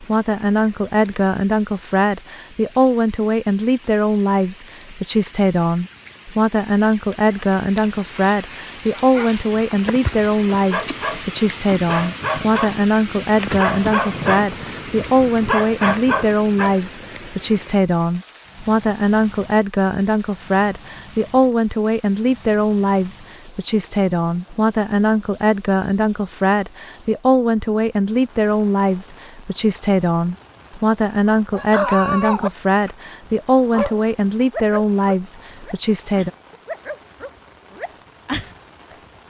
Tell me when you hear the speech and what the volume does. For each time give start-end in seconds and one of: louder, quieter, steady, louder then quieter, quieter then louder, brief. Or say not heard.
0.0-36.3 steady.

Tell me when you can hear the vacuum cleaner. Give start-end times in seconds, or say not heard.
not heard.